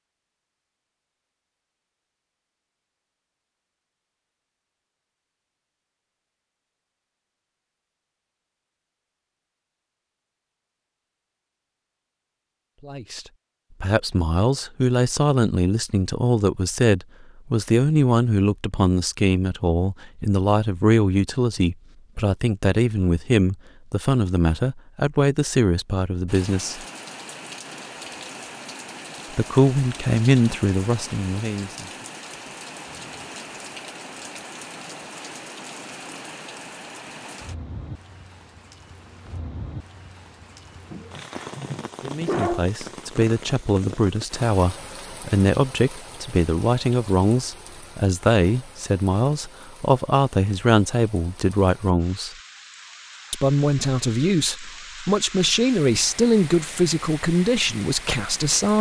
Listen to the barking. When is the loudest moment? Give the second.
42 s.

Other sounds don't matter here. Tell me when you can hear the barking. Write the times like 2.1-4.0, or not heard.
40.9-42.7.